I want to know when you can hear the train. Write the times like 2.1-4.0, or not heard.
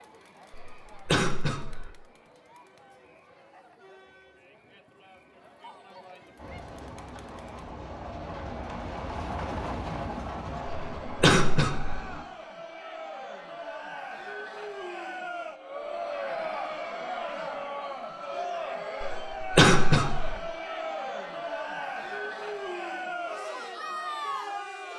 6.3-12.2.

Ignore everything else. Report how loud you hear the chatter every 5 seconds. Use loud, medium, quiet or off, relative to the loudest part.
quiet, quiet, medium, loud, loud.